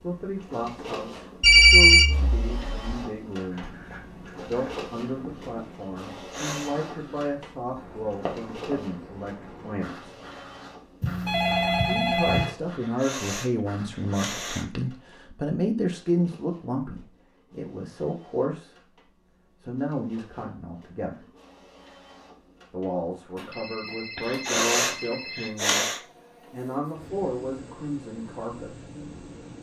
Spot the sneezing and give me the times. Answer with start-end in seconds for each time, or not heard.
6.1-6.8, 12.8-14.7, 24.2-26.0.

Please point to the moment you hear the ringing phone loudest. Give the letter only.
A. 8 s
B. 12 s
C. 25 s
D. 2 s
D.